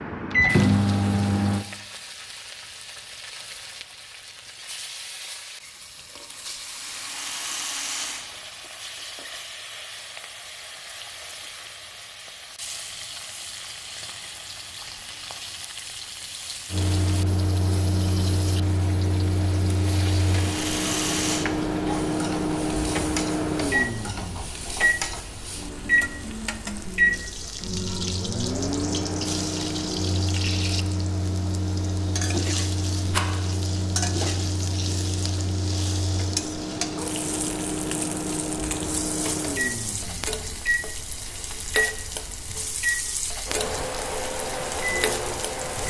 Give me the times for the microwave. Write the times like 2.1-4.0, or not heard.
0.0-1.6, 16.7-45.8.